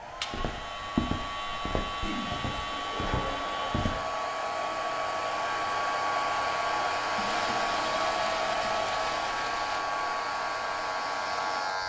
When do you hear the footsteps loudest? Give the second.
1 s.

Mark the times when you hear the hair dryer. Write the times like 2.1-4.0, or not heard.
0.0-11.8.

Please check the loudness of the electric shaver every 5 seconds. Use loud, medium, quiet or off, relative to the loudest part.
medium, loud, loud.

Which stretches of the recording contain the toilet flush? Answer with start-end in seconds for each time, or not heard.
1.9-3.9, 7.2-9.8.